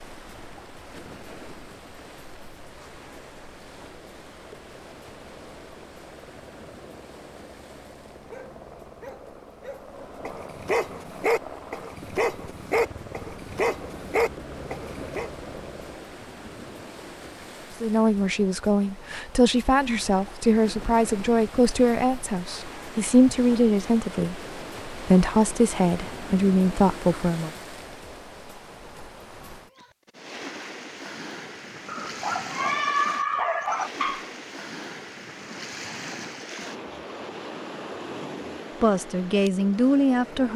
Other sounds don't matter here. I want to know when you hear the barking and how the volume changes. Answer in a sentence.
The barking can be heard from 8.2 to 15.3 s, getting louder; and briefly from 31.9 to 34.2 s.